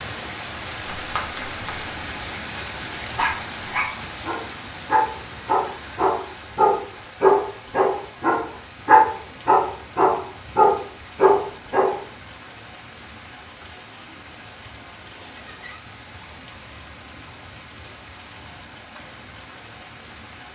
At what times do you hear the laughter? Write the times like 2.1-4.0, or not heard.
15.2-15.8.